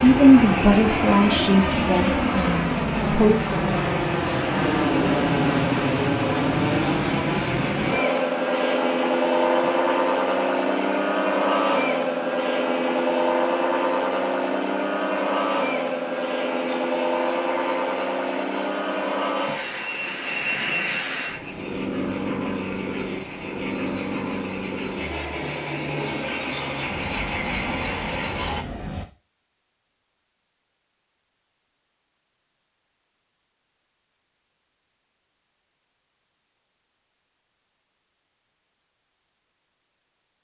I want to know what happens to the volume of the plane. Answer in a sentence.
The volume of the plane goes down.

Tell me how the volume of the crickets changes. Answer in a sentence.
The volume of the crickets goes down, then up.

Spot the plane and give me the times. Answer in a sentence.
You can hear the plane from 0.0 to 29.1 s.